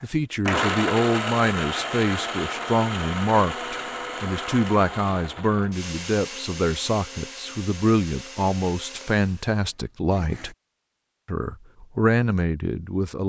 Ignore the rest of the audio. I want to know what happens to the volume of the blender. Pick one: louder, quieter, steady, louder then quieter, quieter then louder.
quieter.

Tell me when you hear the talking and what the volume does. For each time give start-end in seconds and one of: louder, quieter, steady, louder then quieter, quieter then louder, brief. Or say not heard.
0.0-10.6 steady
11.2-13.2 brief.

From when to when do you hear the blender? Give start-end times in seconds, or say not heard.
0.0-10.6.